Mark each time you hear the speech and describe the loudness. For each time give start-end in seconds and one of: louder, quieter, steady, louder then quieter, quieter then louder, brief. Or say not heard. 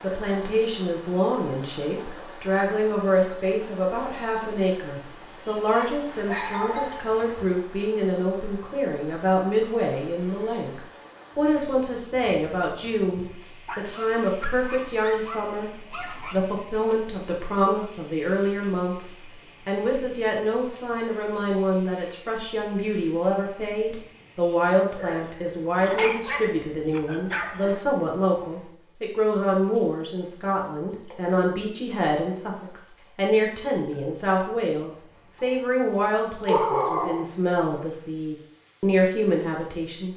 0.0-40.1 steady.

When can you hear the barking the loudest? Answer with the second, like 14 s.
37 s.